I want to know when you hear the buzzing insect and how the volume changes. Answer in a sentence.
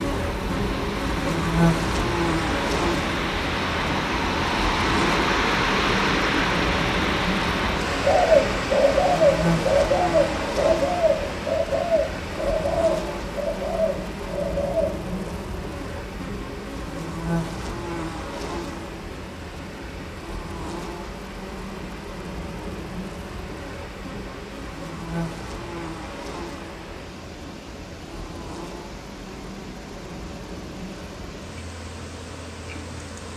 You can hear the buzzing insect from 0.0 to 33.3 s, getting quieter.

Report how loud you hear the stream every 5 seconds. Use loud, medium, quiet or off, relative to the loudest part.
loud, loud, medium, quiet, quiet, quiet, quiet.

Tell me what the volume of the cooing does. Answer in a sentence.
The loudness of the cooing goes down.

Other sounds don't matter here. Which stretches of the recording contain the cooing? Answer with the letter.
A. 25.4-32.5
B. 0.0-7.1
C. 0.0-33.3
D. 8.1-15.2
D.